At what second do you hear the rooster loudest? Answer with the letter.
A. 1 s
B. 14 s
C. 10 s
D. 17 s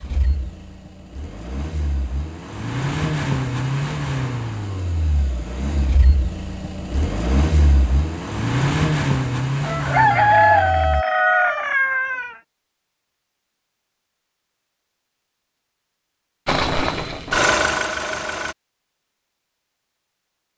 C.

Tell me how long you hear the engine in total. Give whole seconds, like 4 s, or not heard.
13 s.